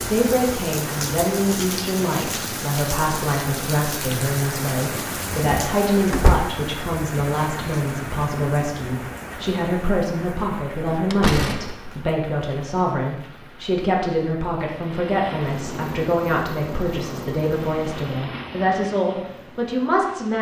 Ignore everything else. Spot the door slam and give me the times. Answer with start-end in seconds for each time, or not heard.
6.1-6.5, 10.9-12.1.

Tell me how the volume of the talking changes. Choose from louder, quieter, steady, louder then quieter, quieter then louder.
steady.